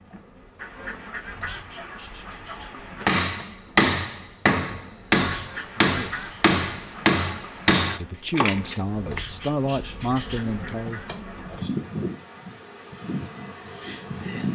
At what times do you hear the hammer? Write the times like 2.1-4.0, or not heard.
3.0-9.2.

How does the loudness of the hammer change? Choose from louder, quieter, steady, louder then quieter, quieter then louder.
quieter.